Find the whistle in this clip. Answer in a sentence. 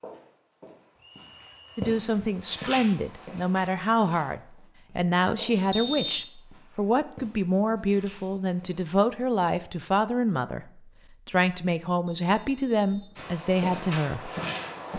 The whistle can be heard from 0.9 to 1.9 s, from 5.7 to 6.3 s and from 12.1 to 13.2 s.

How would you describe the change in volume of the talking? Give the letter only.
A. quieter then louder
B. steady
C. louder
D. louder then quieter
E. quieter
B.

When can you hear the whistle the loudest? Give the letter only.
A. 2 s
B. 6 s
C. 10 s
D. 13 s
B.